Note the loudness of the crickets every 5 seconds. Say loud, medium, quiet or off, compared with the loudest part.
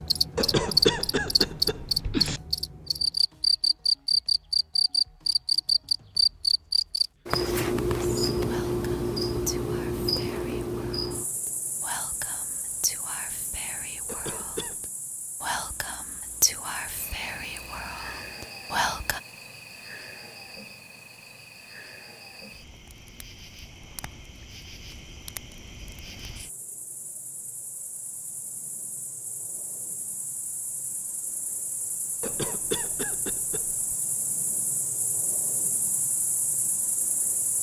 loud, loud, medium, quiet, quiet, quiet, quiet, medium.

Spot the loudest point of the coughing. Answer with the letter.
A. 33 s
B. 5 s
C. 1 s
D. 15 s
C.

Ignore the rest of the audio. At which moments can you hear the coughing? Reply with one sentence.
You can hear the coughing from 0.3 to 2.4 s, from 14.1 to 14.8 s and from 32.2 to 33.9 s.